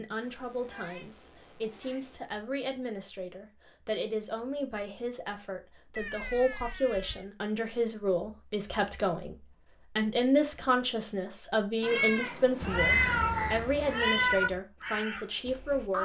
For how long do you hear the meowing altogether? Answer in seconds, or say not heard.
6 s.